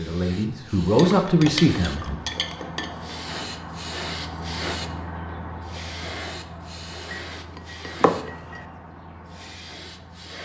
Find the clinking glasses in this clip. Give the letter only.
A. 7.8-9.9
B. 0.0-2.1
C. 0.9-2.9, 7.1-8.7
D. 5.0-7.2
C.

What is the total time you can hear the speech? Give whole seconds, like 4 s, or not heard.
2 s.